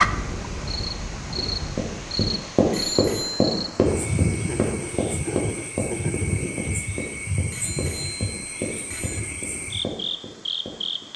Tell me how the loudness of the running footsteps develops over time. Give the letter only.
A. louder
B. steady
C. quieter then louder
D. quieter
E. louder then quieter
D.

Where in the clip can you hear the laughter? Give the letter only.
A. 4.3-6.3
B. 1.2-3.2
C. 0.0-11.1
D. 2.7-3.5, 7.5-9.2
A.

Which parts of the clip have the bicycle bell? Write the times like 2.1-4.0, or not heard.
2.7-3.5, 7.5-9.2.